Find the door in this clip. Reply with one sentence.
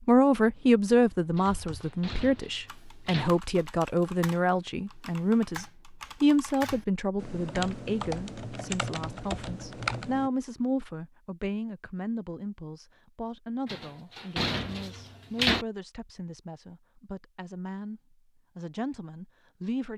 You can hear the door from 1.4 to 3.3 s and from 13.7 to 15.7 s.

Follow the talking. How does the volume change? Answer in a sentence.
The loudness of the talking goes down.